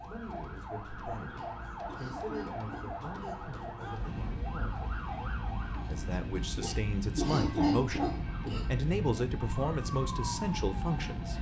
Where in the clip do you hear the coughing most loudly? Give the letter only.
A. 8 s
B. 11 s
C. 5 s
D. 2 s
A.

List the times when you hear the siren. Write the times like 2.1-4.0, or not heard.
0.0-6.2, 7.8-11.3.